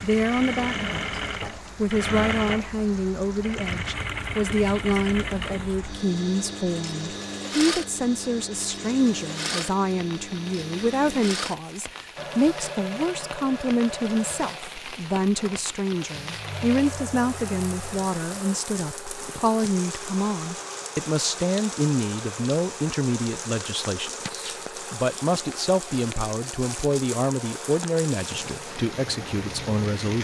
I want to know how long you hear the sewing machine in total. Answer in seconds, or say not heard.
30 s.